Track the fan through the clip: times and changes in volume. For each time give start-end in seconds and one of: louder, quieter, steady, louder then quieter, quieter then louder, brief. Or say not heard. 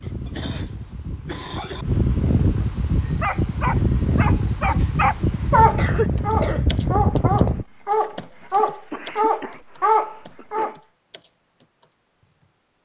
0.0-7.7 louder.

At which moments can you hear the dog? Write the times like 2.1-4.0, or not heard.
2.6-10.8.